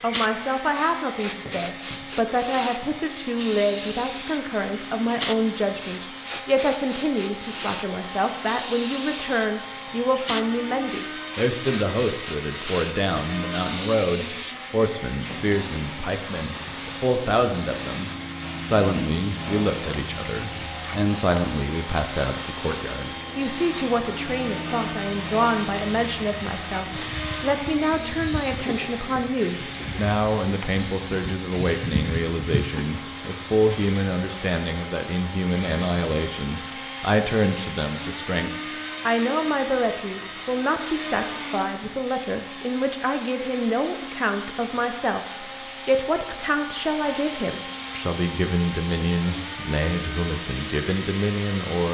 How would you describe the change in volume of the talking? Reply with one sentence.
The volume of the talking stays about the same.